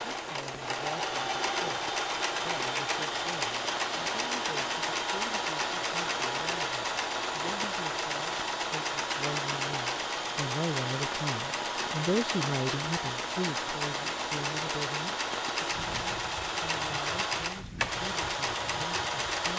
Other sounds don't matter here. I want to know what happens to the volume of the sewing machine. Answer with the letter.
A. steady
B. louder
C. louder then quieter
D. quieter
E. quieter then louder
A.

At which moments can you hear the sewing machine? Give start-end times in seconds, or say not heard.
0.0-19.5.